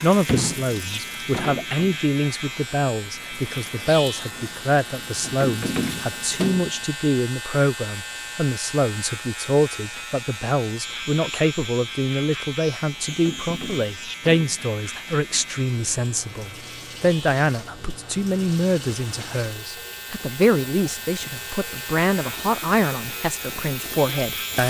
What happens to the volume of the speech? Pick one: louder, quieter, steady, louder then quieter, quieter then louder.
steady.